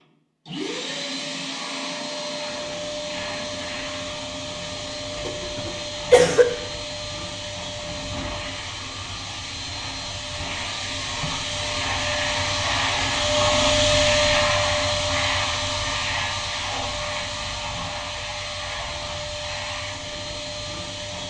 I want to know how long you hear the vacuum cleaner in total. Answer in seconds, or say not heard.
21 s.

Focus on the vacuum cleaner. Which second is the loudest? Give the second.
14 s.